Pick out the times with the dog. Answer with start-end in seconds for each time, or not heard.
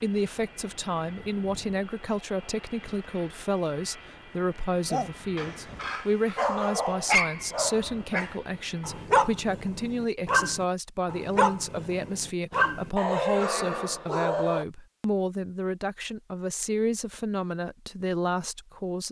4.9-14.7.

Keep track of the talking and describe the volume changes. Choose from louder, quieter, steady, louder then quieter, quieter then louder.
steady.